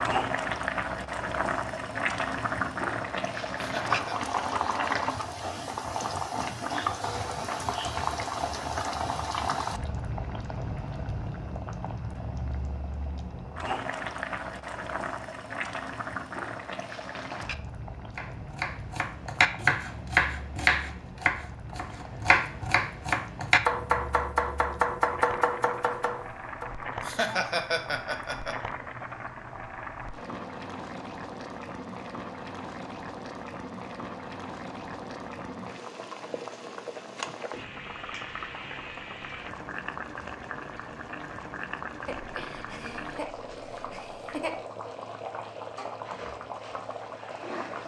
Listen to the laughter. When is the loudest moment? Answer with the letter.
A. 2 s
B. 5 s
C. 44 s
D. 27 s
D.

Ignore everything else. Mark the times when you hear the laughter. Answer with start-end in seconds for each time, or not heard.
3.5-4.2, 27.0-28.6, 42.0-44.6.